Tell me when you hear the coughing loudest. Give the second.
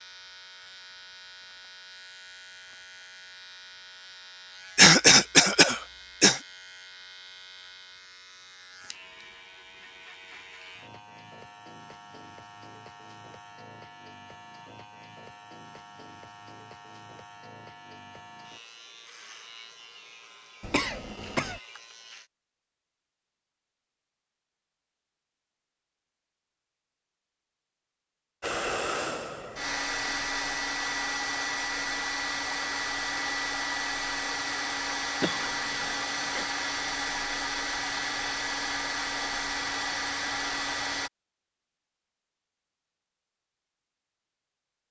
5 s.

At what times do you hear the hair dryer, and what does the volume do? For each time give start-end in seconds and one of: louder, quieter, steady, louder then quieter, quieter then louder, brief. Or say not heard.
28.4-41.1 steady.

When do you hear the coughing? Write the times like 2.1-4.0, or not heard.
4.8-6.4, 20.6-21.6, 35.2-36.5.